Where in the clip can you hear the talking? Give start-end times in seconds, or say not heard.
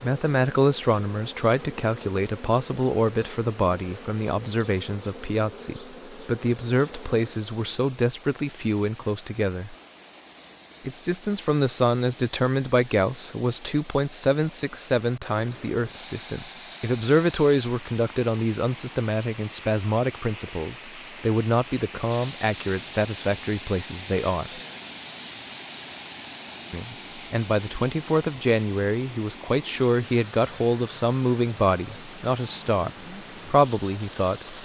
0.0-9.8, 10.8-24.6, 26.7-34.5.